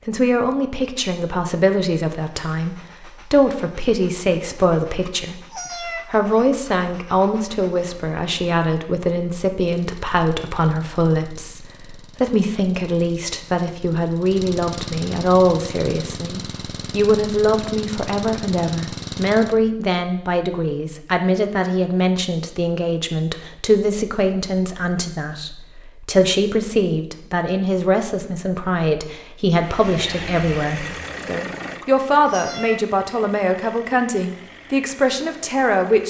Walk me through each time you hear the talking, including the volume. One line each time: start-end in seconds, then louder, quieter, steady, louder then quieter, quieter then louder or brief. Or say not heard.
0.1-36.0 steady.